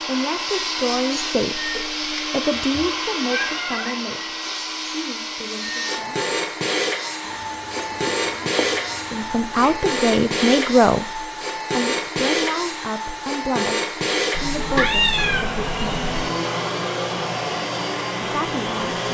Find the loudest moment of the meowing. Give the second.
15 s.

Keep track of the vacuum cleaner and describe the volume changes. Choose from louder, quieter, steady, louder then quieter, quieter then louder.
steady.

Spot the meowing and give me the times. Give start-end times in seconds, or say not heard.
2.6-4.0, 7.2-9.8, 14.3-16.3.